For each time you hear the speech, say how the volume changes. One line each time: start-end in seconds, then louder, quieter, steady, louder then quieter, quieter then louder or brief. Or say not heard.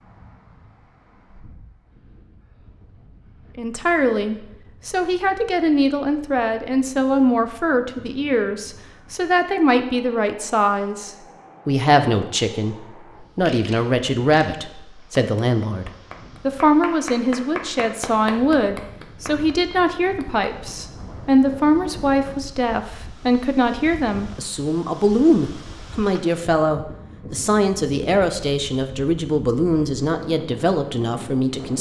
3.5-31.7 steady.